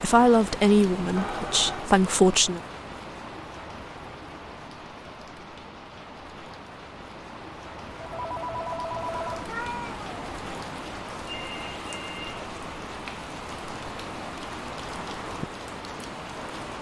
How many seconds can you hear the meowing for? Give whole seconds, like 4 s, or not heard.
2 s.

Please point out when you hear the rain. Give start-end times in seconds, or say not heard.
0.0-16.7.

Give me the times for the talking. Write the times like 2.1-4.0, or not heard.
0.0-2.6.